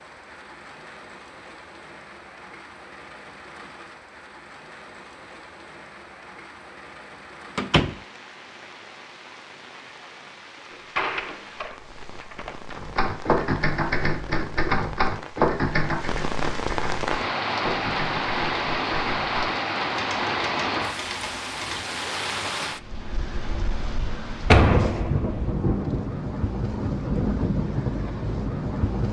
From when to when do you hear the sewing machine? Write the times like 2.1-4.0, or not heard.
not heard.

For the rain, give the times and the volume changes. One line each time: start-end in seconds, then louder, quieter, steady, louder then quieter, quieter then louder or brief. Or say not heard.
0.0-29.0 louder.